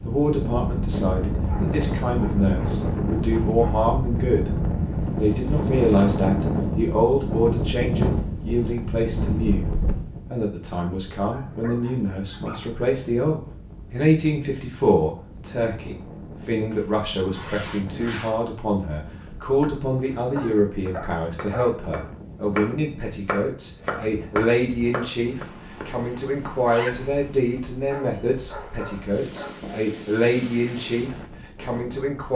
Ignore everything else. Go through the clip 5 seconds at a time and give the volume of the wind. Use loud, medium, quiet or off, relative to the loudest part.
loud, loud, quiet, quiet, quiet, quiet, quiet.